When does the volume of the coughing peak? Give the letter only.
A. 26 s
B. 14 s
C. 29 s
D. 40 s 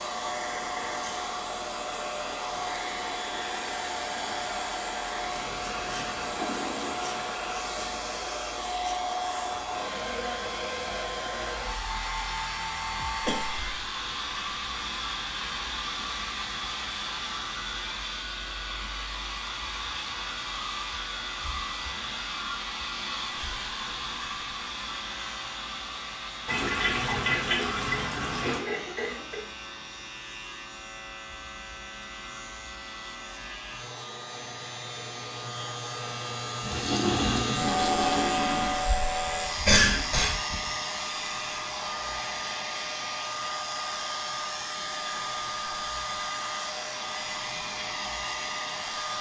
D.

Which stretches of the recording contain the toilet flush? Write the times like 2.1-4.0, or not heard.
5.2-7.2, 26.4-28.6, 36.6-38.8.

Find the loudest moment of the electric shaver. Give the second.
38 s.